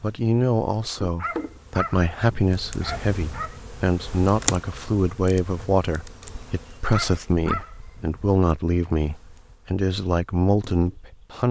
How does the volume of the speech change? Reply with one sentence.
The volume of the speech stays about the same.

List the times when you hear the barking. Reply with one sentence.
You can hear the barking from 1.1 to 3.6 s and from 6.9 to 8.2 s.